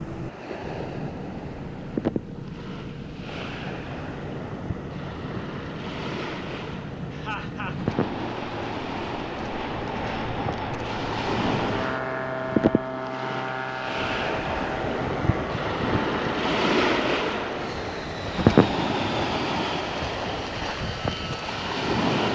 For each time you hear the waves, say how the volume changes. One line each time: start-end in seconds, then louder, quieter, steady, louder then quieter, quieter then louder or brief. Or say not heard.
0.0-22.2 louder.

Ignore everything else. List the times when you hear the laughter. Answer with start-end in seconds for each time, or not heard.
7.1-7.8.